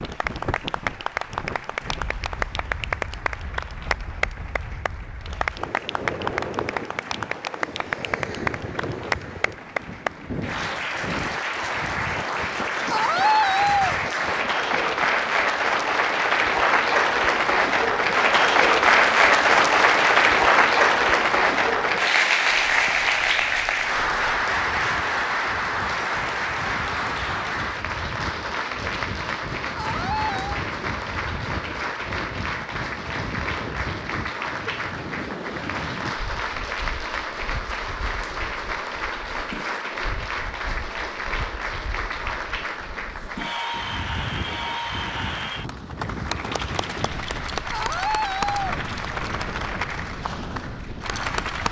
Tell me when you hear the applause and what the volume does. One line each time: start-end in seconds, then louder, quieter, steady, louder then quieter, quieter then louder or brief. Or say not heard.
0.0-51.6 louder then quieter.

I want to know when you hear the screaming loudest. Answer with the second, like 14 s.
13 s.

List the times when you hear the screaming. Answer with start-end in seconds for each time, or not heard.
12.9-14.0, 29.8-30.6, 47.7-48.8.